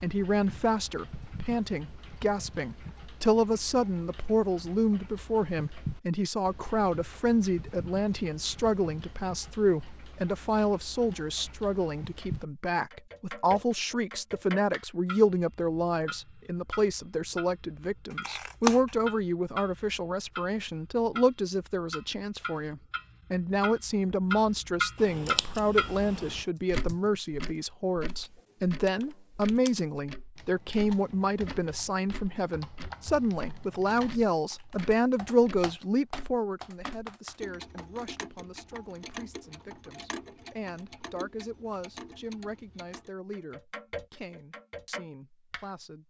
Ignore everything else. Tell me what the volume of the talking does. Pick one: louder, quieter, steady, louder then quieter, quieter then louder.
quieter.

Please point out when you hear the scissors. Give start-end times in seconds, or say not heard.
18.1-18.9, 24.9-26.4.